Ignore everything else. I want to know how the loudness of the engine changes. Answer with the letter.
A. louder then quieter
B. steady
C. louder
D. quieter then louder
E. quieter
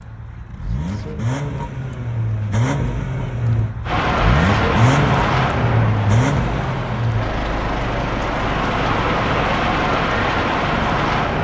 A.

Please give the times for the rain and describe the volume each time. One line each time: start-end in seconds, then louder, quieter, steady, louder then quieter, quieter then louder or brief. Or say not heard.
3.9-11.4 quieter then louder.